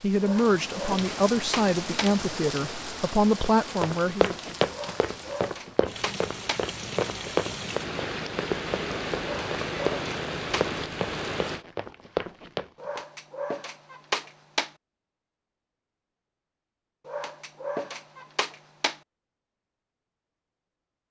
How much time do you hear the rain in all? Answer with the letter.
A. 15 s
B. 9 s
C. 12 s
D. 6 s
C.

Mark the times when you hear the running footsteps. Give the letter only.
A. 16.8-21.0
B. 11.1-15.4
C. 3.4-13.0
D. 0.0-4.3
C.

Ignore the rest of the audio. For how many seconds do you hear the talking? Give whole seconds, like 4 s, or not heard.
4 s.